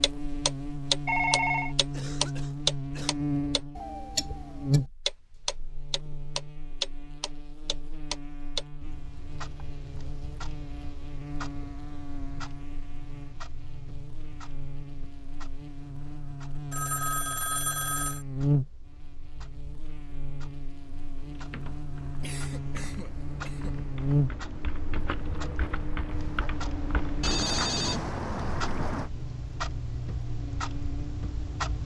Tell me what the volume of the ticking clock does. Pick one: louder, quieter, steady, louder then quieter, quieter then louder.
quieter then louder.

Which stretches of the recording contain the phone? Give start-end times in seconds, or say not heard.
1.1-1.8, 16.7-18.2, 27.2-29.1.